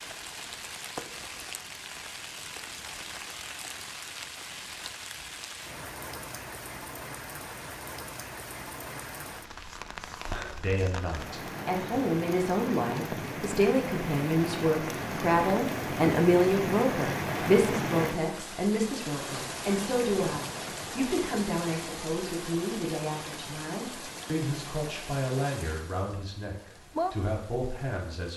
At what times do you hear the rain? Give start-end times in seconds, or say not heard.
0.0-28.3.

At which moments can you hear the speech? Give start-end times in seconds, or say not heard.
10.4-28.3.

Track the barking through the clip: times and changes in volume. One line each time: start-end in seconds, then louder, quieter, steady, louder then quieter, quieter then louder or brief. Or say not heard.
not heard.